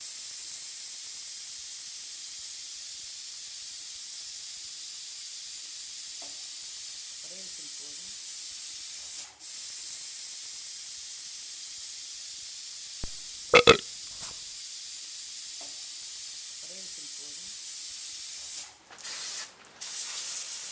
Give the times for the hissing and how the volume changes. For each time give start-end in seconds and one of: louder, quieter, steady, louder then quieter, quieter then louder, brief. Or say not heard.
0.0-20.6 steady.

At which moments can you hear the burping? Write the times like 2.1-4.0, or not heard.
13.0-14.3.